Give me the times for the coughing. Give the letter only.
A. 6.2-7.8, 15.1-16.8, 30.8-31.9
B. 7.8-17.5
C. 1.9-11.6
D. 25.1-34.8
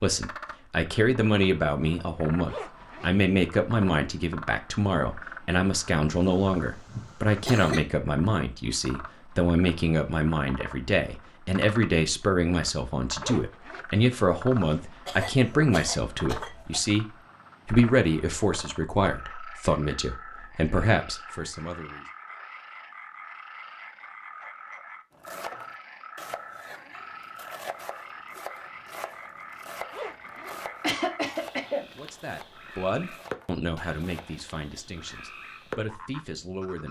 A.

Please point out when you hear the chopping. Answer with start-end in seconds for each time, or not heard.
25.1-34.8.